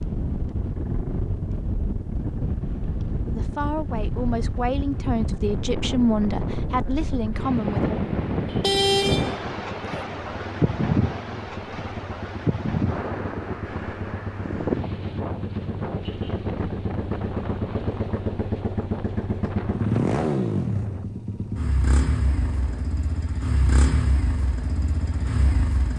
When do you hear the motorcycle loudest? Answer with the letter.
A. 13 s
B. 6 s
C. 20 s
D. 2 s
C.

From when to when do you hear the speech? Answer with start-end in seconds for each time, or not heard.
3.2-8.0.